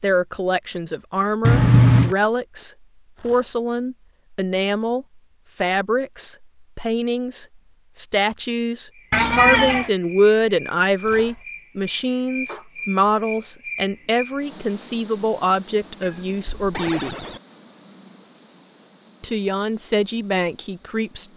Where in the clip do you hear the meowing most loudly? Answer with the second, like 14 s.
2 s.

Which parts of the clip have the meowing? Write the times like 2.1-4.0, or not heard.
1.4-2.1, 9.1-9.9, 16.0-17.4.